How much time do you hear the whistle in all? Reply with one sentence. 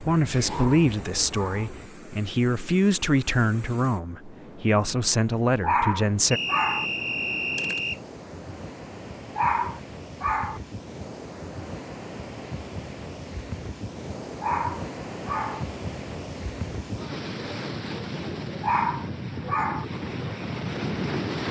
The whistle can be heard for 2 seconds in total.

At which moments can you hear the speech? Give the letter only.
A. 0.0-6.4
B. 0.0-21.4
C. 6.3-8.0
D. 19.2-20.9
A.